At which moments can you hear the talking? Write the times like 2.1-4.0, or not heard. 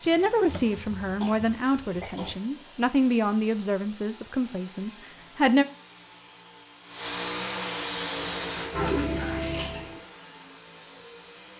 0.0-5.7.